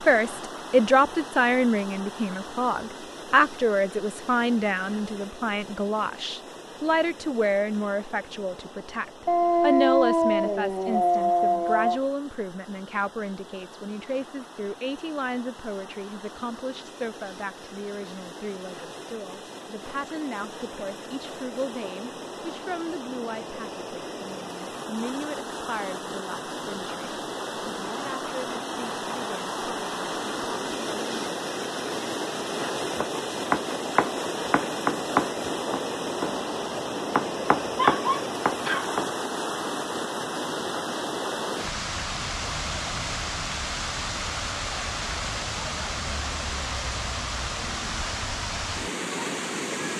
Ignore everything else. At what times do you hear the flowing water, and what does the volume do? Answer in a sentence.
The flowing water can be heard from 0.0 to 49.9 s, getting louder.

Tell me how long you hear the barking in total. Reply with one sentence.
You can hear the barking for 4 seconds altogether.